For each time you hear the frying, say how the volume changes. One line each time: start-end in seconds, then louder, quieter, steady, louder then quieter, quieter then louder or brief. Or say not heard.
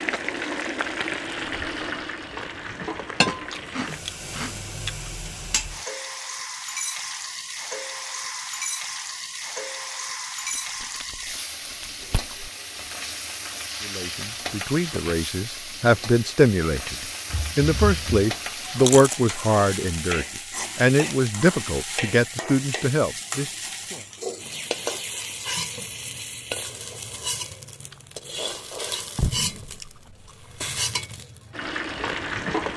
0.0-32.7 steady.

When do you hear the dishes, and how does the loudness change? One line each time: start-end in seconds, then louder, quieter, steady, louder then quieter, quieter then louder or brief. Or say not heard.
not heard.